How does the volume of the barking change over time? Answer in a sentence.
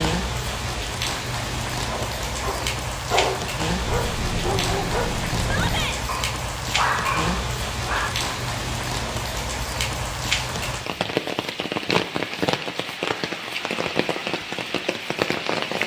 The loudness of the barking goes down, then up.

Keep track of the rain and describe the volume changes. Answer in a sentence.
The volume of the rain stays about the same.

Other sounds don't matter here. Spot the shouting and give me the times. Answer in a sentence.
The shouting can be heard from 5.4 to 6.0 s.